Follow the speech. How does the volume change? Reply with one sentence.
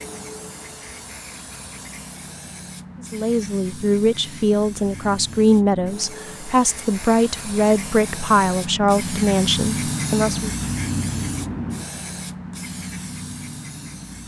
The loudness of the speech stays about the same.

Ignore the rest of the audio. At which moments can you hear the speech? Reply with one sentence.
You can hear the speech from 3.1 to 10.5 s.